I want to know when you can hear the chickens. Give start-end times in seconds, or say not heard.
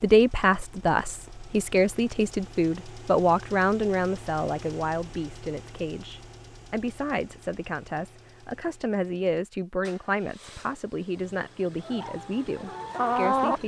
11.8-13.6.